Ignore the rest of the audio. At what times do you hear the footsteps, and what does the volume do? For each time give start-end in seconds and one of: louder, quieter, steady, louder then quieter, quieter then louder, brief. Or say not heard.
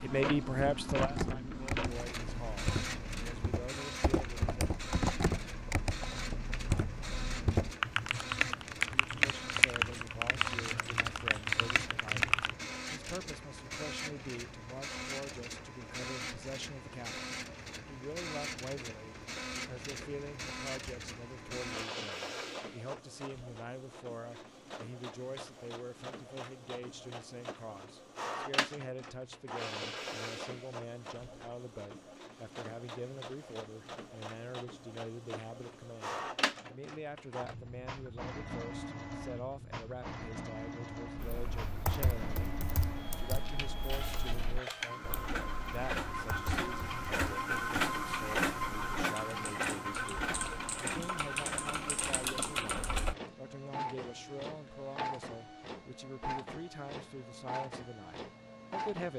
not heard.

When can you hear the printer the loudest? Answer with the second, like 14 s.
48 s.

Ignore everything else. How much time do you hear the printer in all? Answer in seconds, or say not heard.
59 s.